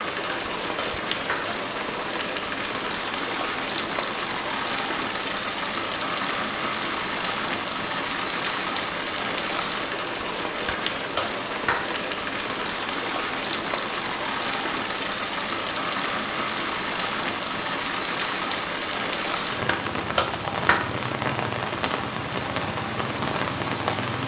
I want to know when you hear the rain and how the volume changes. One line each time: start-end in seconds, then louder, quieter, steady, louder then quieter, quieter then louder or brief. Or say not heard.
0.0-24.2 steady.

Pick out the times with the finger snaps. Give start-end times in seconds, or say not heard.
0.2-1.4, 10.7-11.8, 19.6-20.8.